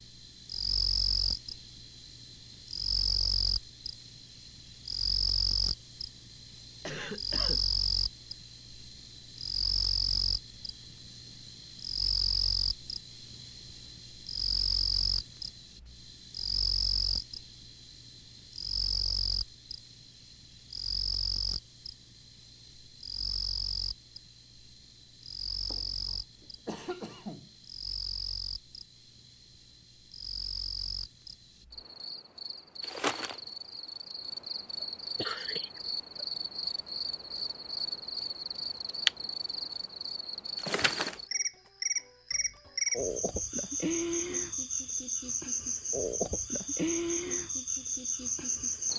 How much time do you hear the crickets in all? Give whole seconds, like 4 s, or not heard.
49 s.